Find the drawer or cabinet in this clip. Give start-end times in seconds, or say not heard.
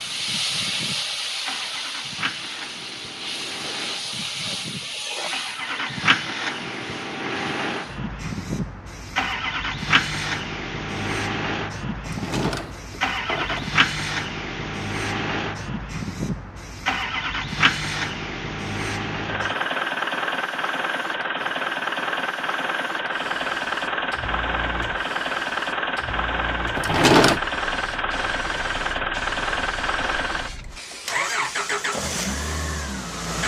12.1-13.7, 26.8-27.4.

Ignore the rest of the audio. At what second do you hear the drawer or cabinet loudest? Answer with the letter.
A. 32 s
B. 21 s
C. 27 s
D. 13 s
C.